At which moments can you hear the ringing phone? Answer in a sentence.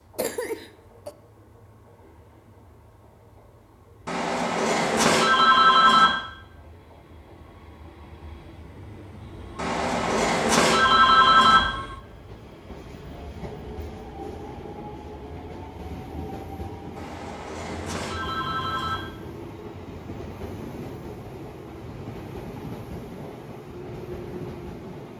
The ringing phone can be heard from 4.0 to 6.1 s, from 9.6 to 11.6 s and from 16.9 to 18.9 s.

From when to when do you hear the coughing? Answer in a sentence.
You can hear the coughing from 0.1 to 1.1 s.